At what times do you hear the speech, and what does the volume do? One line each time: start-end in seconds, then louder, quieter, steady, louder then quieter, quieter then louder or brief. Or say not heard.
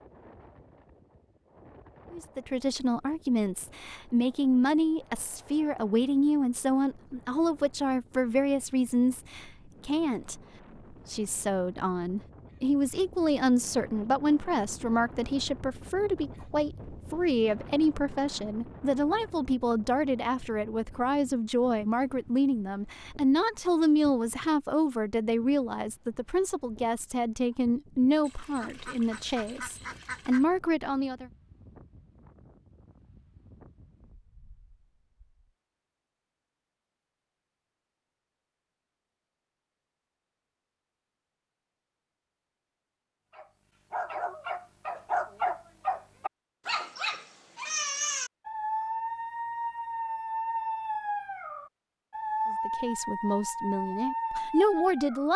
2.1-31.2 steady
52.5-55.3 brief.